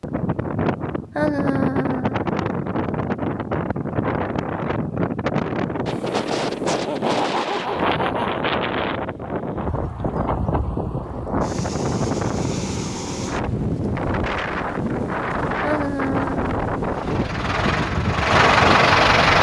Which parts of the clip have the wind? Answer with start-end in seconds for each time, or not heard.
0.0-19.3.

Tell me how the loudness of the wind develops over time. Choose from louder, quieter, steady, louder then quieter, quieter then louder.
steady.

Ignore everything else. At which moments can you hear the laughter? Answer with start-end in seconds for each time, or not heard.
1.1-2.1, 6.7-8.4, 15.6-16.4.